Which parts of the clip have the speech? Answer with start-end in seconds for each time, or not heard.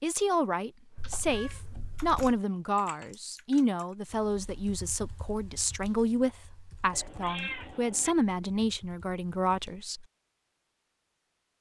0.0-10.1.